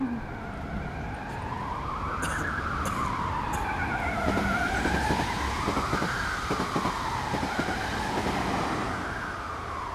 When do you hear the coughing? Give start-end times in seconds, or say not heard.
2.2-3.7.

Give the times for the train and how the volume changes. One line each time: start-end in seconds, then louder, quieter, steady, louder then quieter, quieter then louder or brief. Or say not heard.
0.0-9.9 louder.